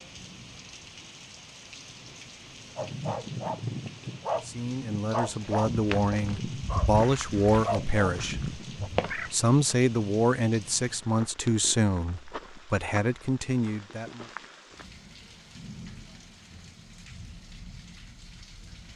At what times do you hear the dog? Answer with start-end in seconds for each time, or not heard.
2.8-8.9.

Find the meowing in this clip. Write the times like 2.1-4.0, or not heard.
8.8-9.3.